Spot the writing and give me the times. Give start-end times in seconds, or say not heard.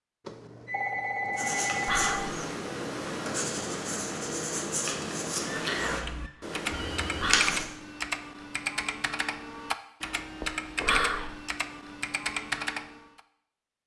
1.3-7.7.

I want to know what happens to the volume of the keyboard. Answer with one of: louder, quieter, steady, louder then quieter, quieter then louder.
steady.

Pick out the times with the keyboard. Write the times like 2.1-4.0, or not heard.
5.8-13.2.